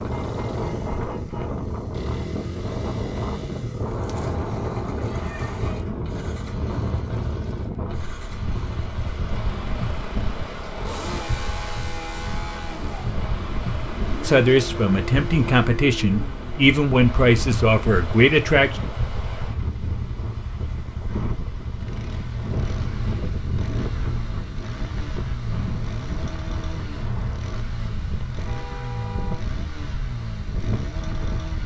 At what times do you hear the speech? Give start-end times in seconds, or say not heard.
14.2-18.8.